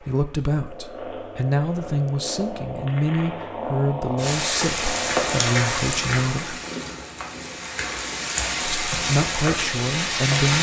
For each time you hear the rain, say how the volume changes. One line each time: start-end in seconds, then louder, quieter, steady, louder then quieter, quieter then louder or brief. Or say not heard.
4.2-10.5 quieter then louder.